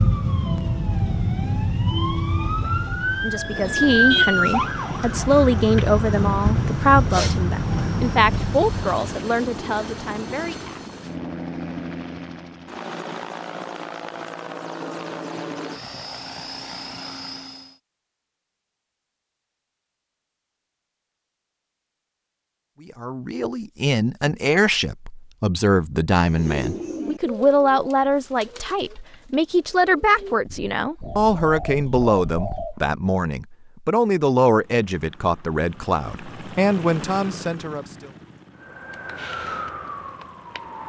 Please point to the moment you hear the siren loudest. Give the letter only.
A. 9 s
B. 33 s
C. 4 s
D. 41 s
C.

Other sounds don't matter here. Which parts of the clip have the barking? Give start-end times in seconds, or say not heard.
not heard.